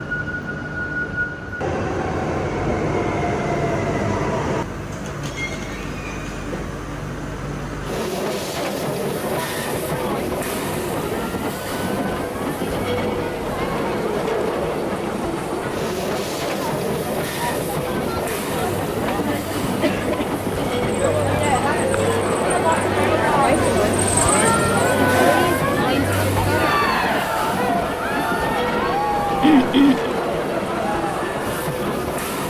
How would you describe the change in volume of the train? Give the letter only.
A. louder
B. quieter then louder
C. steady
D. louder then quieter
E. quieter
C.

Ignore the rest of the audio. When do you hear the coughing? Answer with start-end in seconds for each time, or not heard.
29.4-30.1.